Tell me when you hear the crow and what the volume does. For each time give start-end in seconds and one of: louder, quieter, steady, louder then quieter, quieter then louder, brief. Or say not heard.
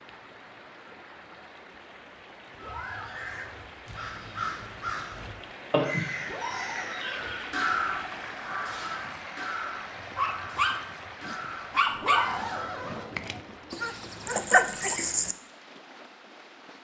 2.5-12.7 louder then quieter.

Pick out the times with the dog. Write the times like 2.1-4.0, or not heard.
9.9-15.3.